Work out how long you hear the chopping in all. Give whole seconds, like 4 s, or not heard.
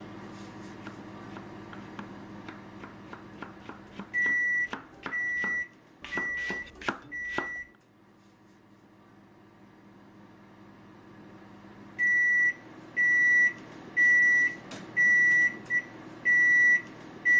7 s.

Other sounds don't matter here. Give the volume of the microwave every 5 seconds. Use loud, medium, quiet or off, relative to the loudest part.
quiet, quiet, loud, loud.